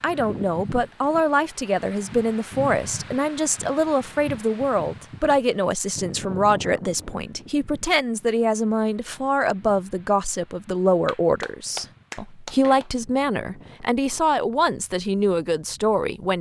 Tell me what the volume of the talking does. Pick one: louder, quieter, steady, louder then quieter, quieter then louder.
steady.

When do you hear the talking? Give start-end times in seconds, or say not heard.
0.0-16.3.